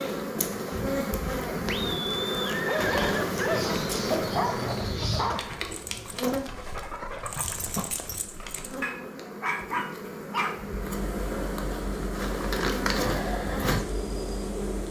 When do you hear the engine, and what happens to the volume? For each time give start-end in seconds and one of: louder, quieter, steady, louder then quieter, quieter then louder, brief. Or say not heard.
10.8-14.8 steady.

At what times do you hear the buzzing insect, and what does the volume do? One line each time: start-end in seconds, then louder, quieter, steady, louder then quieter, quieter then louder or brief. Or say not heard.
0.0-14.8 quieter then louder.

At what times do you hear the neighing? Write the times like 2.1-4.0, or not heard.
1.6-3.6.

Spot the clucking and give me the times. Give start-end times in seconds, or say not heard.
2.8-5.3.